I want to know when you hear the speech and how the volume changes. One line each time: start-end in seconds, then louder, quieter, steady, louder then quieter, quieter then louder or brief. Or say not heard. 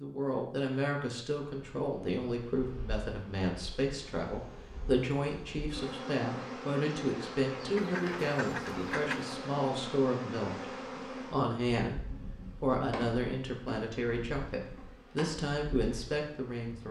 0.0-16.8 steady.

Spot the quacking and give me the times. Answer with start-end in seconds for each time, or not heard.
7.8-9.3.